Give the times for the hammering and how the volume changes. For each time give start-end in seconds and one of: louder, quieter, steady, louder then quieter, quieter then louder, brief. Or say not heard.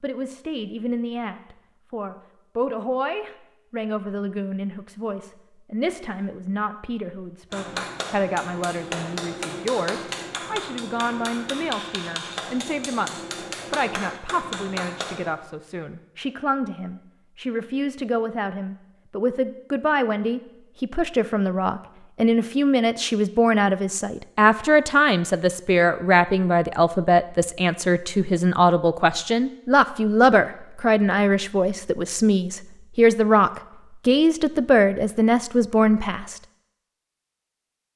7.5-15.3 steady.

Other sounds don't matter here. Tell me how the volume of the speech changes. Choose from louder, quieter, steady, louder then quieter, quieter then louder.
louder.